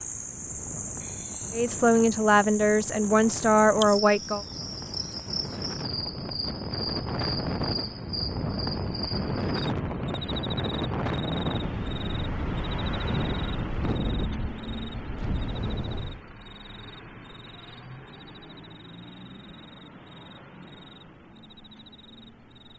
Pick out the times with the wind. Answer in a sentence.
The wind can be heard from 0.0 to 16.2 s.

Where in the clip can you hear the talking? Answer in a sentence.
The talking can be heard from 1.5 to 4.5 s.